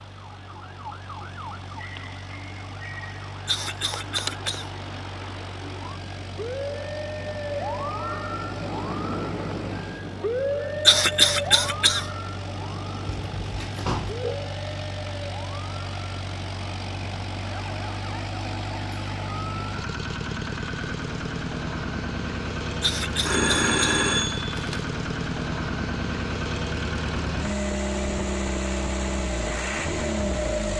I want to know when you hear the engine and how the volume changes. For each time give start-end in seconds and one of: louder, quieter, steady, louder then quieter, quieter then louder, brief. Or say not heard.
0.0-30.7 louder.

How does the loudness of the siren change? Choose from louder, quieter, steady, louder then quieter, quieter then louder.
louder then quieter.